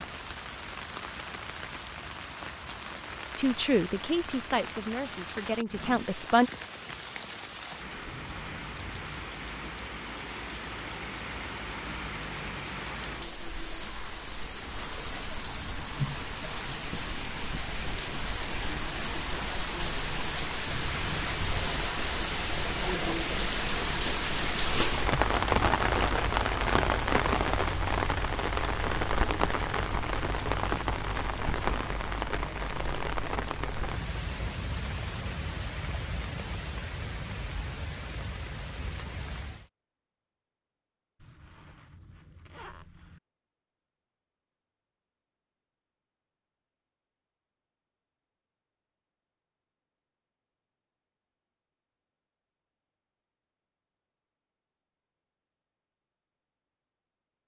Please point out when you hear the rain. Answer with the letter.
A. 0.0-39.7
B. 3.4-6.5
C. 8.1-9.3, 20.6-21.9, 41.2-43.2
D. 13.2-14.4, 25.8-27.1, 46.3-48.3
A.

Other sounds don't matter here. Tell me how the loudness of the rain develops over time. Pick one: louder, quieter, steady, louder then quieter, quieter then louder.
louder then quieter.